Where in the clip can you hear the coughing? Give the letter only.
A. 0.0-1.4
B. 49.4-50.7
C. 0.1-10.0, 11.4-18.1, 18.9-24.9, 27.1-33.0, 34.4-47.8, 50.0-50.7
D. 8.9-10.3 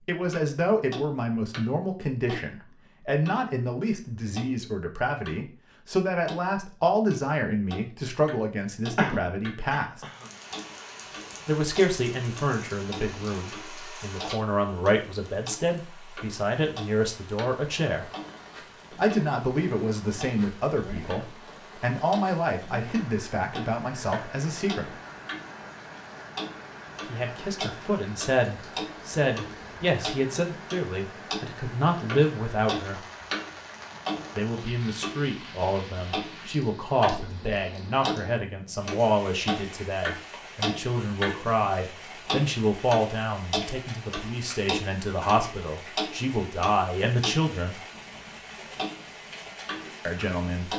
D.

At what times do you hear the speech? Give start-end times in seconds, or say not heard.
0.1-10.0, 11.4-18.1, 18.9-24.9, 27.1-33.0, 34.4-47.8, 50.0-50.7.